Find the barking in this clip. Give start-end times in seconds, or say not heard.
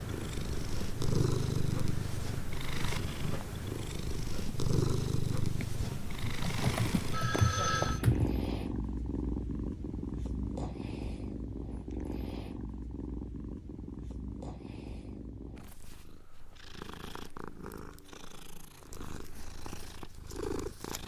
not heard.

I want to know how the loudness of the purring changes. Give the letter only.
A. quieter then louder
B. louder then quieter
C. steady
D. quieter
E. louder
D.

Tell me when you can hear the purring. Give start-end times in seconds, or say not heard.
0.0-21.0.